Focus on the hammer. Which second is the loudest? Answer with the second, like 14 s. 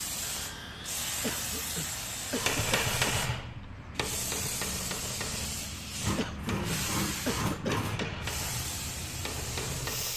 3 s.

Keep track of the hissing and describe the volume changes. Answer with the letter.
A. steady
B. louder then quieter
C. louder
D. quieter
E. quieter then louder
A.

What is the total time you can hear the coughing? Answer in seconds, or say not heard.
4 s.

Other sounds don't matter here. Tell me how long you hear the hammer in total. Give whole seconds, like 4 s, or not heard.
8 s.